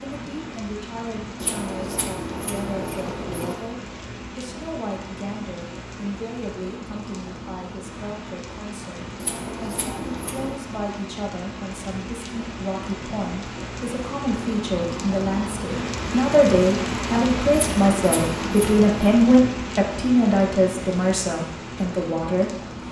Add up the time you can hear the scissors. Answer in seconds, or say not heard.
5 s.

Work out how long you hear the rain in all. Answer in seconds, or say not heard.
23 s.